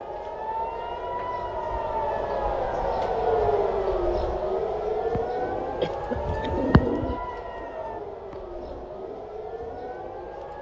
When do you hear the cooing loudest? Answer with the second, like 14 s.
7 s.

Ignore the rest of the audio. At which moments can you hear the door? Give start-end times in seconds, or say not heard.
not heard.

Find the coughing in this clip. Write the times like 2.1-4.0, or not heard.
5.8-6.8.